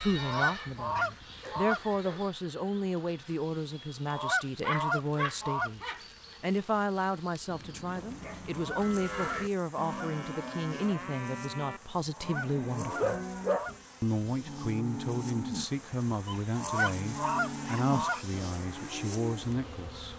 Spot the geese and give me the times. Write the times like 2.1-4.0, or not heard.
0.1-1.8, 4.0-5.7, 8.4-10.1, 12.1-13.8, 16.6-18.2.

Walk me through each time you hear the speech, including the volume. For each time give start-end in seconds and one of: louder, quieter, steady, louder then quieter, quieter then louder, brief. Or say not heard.
0.0-13.2 steady
14.0-20.1 steady.